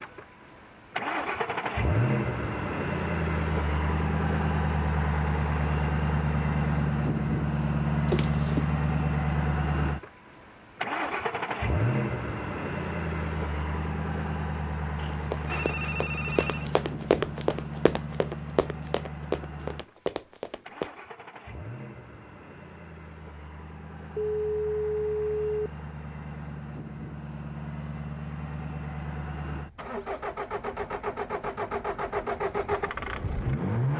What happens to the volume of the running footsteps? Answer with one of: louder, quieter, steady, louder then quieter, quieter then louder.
louder then quieter.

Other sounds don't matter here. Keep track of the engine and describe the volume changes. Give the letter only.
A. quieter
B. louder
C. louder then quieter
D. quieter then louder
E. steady
D.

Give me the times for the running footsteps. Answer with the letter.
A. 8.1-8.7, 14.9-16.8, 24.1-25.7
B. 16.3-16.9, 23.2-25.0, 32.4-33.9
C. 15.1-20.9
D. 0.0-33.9
C.